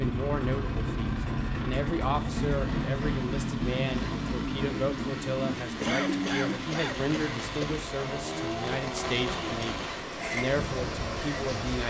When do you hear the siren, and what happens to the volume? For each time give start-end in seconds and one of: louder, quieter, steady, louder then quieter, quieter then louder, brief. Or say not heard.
not heard.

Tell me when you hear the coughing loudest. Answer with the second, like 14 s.
6 s.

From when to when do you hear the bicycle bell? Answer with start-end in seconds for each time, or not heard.
not heard.